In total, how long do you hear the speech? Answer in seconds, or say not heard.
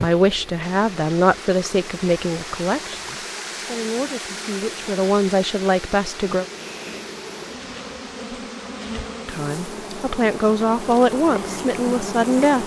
10 s.